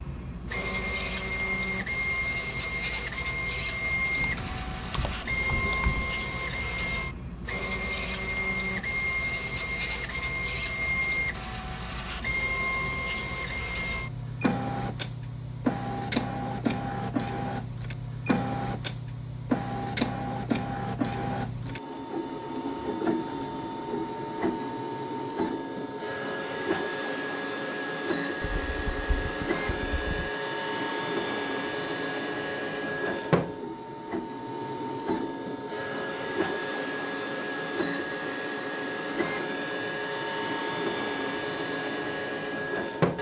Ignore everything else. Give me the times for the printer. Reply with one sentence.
The printer can be heard from 0.0 to 43.1 s.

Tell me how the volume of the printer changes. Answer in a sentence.
The loudness of the printer stays about the same.